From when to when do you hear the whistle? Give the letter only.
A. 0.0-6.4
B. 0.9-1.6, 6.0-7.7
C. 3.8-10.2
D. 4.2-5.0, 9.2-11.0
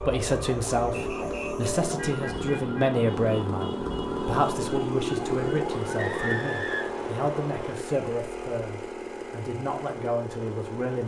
B.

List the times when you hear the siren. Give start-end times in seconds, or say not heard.
0.0-6.4.